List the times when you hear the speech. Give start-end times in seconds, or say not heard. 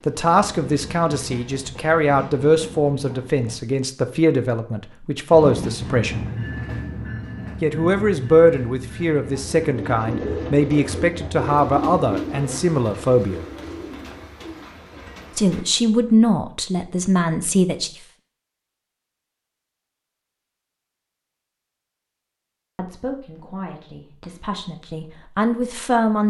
0.1-6.2, 7.6-13.4, 15.3-17.9, 22.8-26.2.